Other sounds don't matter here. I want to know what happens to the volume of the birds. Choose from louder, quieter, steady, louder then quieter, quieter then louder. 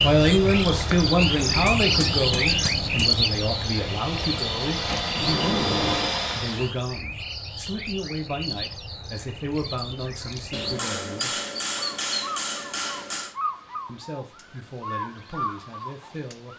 quieter.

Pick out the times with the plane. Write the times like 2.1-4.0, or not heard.
0.2-6.8.